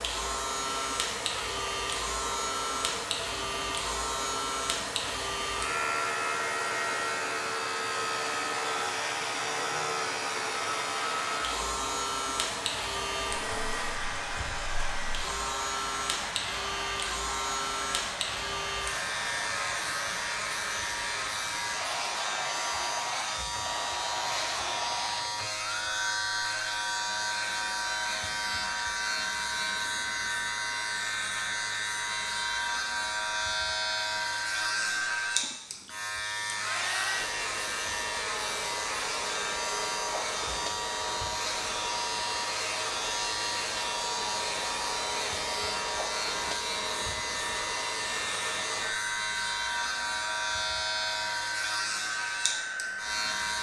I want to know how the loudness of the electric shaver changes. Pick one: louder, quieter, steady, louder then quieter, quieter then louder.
steady.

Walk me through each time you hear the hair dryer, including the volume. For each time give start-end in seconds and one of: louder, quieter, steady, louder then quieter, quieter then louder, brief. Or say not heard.
0.0-53.5 steady.